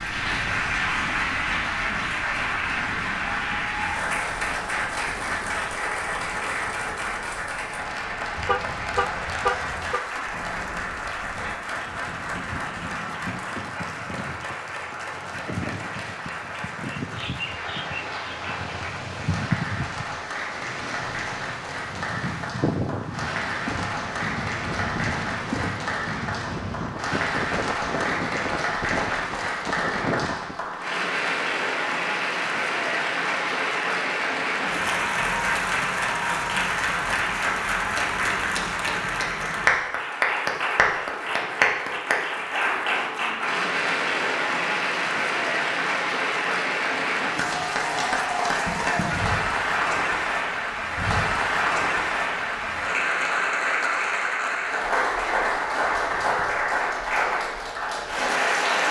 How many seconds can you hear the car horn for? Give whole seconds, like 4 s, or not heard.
2 s.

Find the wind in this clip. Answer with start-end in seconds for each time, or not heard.
0.0-30.7.